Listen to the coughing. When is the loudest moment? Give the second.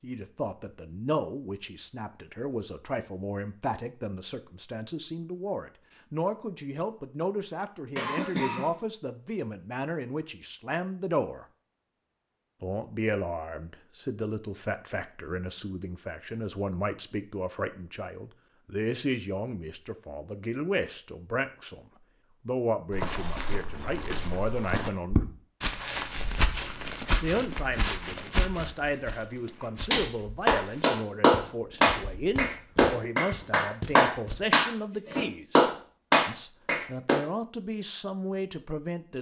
8 s.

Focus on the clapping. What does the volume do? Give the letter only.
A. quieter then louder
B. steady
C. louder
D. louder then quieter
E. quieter
B.